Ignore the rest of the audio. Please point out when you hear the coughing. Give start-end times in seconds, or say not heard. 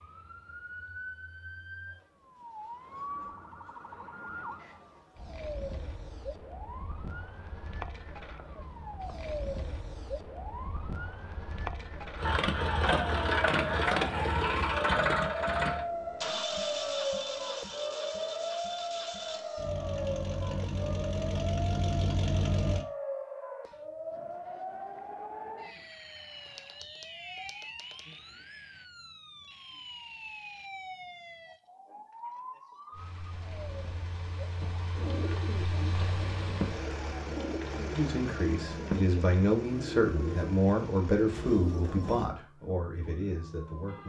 not heard.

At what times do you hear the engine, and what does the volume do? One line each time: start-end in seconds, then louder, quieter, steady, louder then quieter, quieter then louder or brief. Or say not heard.
12.2-22.9 quieter then louder
32.9-41.6 louder then quieter.